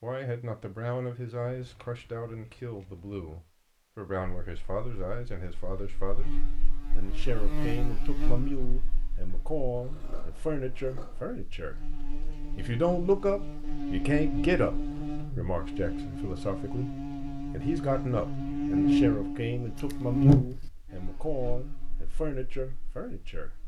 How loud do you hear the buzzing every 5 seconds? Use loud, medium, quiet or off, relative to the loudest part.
off, quiet, medium, loud, loud.